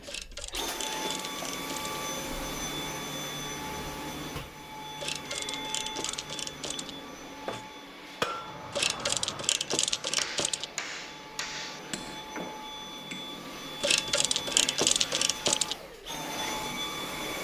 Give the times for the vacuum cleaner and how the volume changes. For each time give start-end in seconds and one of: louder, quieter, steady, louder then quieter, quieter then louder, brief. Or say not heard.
0.0-17.3 quieter then louder.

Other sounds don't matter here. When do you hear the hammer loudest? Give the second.
8 s.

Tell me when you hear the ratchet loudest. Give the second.
15 s.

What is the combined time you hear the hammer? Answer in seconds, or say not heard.
6 s.